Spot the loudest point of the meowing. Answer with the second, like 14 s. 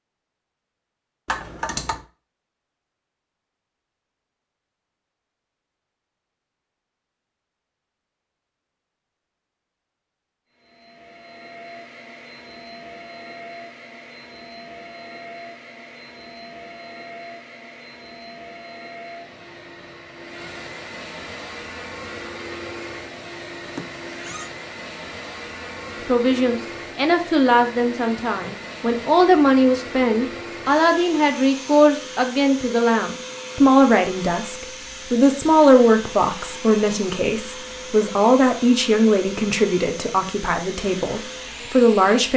2 s.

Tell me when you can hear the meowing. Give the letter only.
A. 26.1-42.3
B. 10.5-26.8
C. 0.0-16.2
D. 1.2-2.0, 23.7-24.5
D.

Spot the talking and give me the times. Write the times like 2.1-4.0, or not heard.
26.1-42.3.